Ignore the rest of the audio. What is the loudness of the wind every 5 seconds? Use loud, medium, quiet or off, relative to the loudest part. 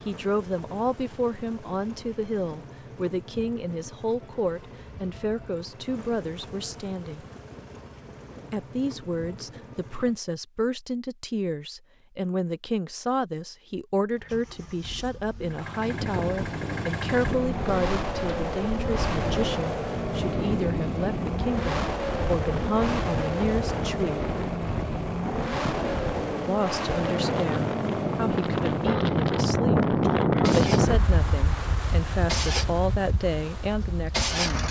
off, off, off, medium, medium, loud, loud.